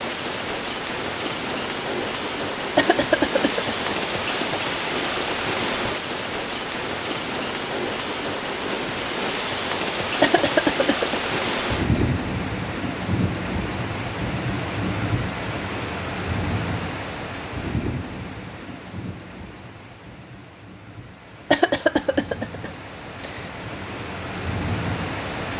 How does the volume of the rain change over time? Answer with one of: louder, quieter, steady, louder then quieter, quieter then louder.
quieter.